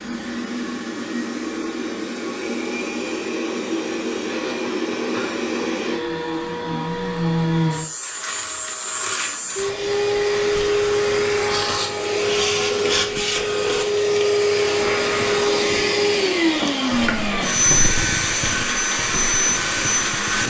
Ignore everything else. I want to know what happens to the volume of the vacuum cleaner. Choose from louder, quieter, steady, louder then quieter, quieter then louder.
louder.